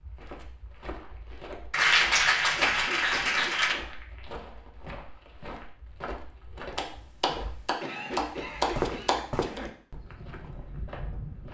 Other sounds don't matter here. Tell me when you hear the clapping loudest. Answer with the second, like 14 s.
2 s.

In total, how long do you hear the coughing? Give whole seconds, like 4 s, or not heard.
3 s.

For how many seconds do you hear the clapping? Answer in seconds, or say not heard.
5 s.